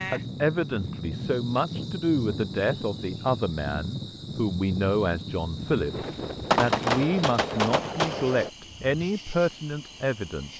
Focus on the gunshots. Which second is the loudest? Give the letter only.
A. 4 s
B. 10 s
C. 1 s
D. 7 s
D.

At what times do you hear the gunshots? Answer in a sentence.
The gunshots can be heard from 5.6 to 9.1 s.